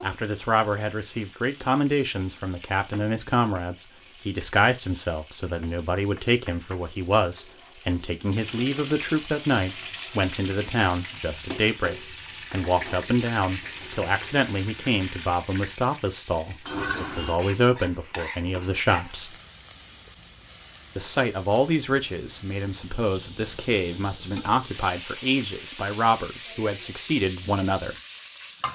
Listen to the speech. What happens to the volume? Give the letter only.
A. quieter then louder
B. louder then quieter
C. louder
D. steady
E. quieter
D.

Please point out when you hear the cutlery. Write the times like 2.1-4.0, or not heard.
not heard.